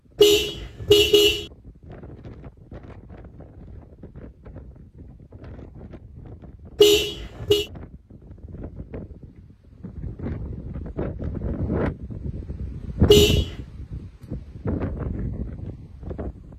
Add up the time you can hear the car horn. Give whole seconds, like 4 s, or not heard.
3 s.